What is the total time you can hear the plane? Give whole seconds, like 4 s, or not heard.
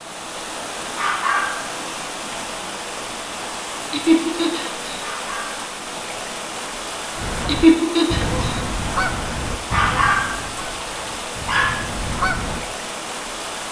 not heard.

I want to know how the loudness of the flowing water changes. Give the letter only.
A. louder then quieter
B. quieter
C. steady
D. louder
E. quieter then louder
C.